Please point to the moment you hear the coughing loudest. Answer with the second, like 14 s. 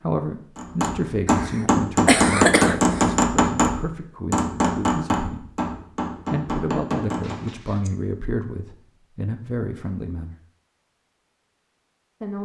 2 s.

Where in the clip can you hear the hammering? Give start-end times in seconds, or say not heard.
0.6-7.5.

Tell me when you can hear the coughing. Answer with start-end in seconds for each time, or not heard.
1.2-3.1, 7.2-8.0.